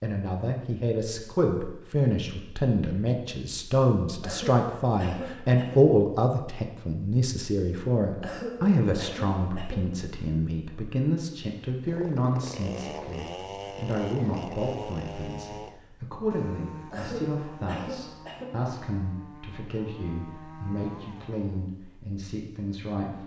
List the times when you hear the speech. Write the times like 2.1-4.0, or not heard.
0.0-23.2.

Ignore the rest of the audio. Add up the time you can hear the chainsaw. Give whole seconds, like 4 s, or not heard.
10 s.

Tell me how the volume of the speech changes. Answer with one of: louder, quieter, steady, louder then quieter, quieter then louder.
quieter.